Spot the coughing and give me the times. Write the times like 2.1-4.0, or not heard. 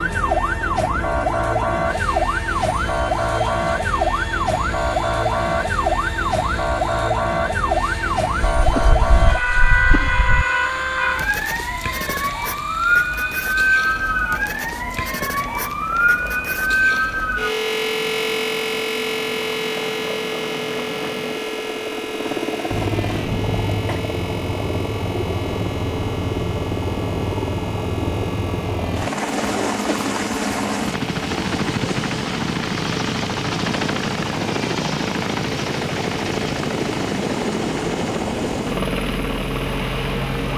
8.6-10.4, 22.7-24.0, 29.4-29.9.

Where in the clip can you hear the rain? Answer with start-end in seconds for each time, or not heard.
not heard.